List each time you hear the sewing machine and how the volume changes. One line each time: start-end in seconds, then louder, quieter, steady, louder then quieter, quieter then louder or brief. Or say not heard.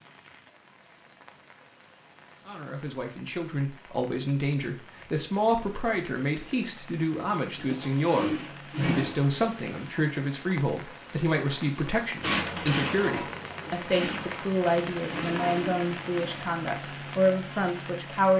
7.6-9.3 brief
12.2-16.4 quieter then louder.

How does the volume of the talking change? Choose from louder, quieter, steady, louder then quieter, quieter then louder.
steady.